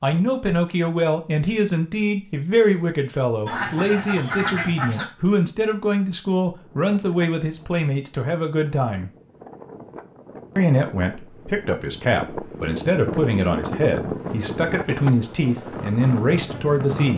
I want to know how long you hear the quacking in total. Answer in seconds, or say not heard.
2 s.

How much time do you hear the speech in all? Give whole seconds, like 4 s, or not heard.
16 s.